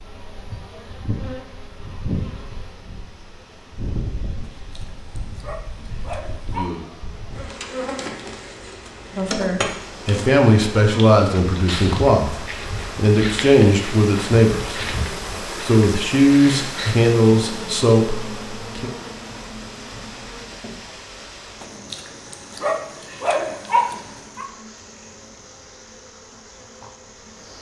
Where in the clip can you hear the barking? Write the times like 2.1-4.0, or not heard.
4.6-6.7, 21.6-24.4.